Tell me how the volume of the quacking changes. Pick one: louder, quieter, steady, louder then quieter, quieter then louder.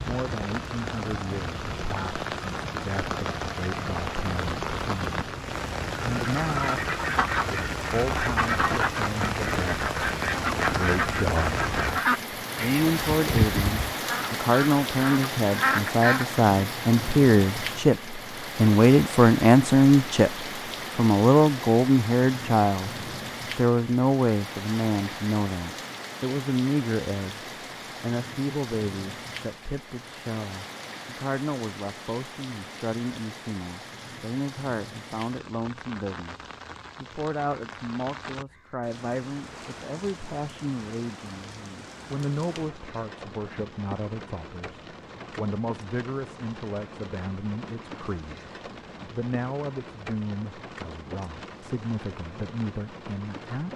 steady.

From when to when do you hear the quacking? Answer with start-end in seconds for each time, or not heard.
6.5-16.2.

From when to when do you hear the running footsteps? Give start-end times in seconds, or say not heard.
not heard.